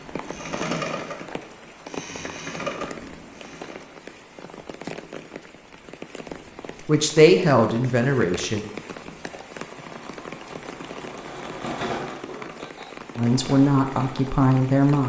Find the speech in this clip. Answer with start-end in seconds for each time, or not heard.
6.8-8.7, 13.2-15.0.